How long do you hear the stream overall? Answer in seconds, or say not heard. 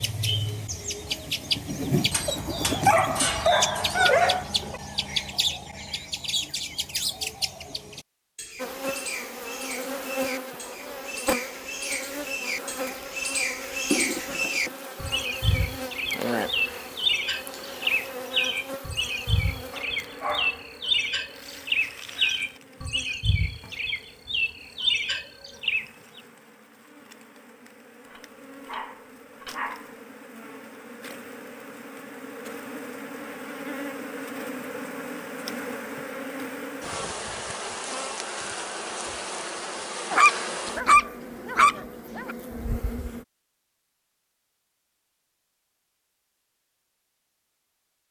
not heard.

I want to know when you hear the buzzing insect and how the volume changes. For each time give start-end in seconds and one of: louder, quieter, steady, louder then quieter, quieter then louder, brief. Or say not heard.
8.6-43.2 quieter then louder.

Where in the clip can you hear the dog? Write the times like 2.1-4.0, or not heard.
2.1-4.8, 19.7-20.6, 28.1-29.9, 40.1-42.4.